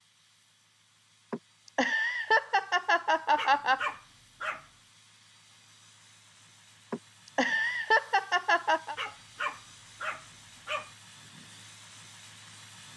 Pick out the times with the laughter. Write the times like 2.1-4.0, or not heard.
1.3-3.9, 6.9-8.9.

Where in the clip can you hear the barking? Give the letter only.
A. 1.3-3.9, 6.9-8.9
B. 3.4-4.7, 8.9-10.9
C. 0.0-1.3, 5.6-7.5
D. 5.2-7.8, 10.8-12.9
B.